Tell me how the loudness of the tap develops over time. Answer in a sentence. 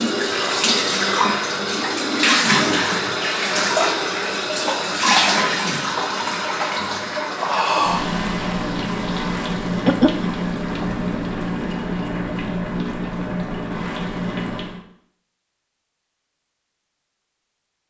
The volume of the tap goes down.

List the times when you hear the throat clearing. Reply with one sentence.
You can hear the throat clearing from 9.7 to 10.3 s.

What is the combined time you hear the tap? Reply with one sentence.
The tap can be heard for 15 seconds in total.